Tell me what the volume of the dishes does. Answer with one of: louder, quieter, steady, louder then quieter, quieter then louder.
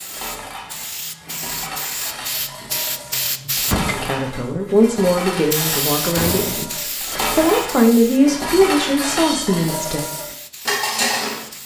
louder.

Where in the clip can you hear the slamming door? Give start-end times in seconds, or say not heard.
3.5-4.0, 6.2-6.7.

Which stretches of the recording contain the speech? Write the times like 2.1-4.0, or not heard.
4.0-10.0.